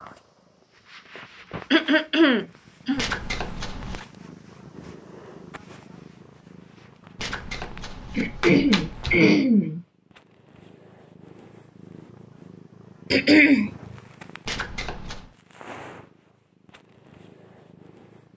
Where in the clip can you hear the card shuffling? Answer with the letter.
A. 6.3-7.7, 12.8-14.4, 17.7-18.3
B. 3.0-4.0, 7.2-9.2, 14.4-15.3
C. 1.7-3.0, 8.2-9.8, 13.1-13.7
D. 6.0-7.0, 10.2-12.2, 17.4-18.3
B.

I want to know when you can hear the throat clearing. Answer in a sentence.
You can hear the throat clearing from 1.7 to 3.0 s, from 8.2 to 9.8 s and from 13.1 to 13.7 s.